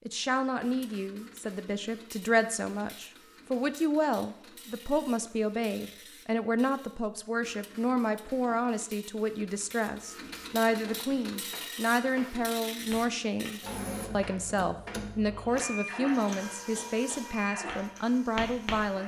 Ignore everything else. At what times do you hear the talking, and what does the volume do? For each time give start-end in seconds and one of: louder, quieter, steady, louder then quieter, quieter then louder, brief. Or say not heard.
0.1-19.0 steady.